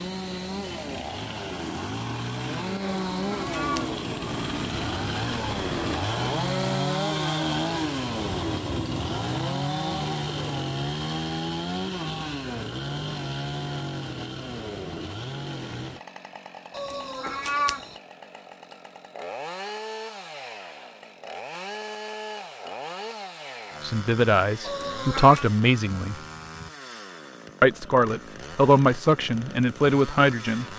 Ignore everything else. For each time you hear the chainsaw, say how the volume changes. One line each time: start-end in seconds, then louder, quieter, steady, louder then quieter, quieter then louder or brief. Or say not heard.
0.0-30.7 quieter.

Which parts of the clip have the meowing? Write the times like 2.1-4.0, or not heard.
3.0-4.0, 16.7-17.9, 24.6-25.4.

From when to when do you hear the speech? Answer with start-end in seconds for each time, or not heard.
23.8-26.1, 27.6-30.6.